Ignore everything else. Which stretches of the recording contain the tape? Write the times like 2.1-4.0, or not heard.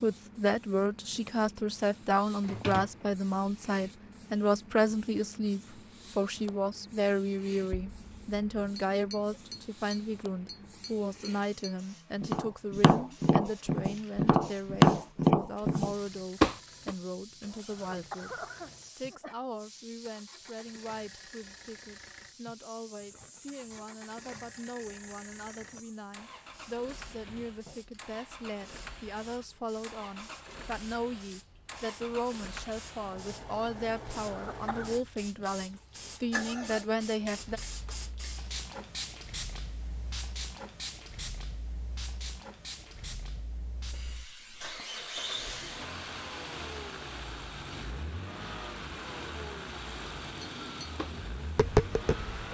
not heard.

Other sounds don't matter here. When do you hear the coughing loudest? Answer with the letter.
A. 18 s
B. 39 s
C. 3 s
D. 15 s
A.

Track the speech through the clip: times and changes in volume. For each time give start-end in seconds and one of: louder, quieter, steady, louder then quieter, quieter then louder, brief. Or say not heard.
0.0-37.6 quieter then louder.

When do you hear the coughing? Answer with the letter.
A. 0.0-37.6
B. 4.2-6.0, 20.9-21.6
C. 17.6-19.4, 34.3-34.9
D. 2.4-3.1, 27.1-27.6
C.